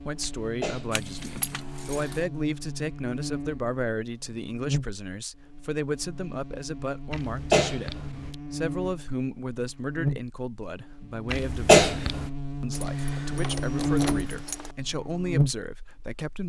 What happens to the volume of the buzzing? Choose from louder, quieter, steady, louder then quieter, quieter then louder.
louder.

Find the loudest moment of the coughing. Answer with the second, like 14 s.
12 s.